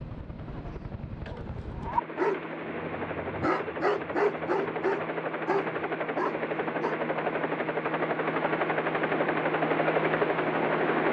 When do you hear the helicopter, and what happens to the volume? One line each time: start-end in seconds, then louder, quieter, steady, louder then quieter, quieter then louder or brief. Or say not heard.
0.0-11.0 louder.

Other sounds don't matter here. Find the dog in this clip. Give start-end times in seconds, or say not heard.
1.3-7.0.